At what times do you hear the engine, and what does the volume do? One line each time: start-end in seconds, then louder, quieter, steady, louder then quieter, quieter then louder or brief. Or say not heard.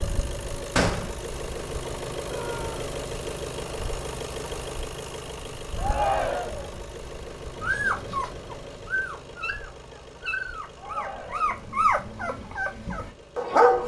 0.0-13.8 quieter.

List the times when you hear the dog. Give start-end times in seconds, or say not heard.
7.6-13.8.